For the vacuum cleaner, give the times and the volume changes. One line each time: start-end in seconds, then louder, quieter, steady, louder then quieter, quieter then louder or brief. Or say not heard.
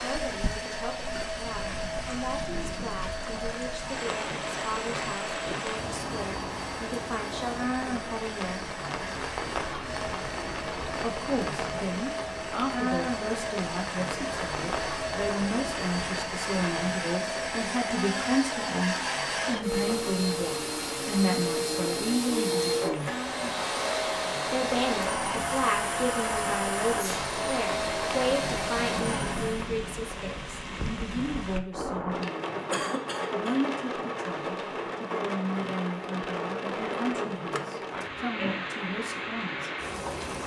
0.0-29.7 louder.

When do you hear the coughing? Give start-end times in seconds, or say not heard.
32.7-33.5.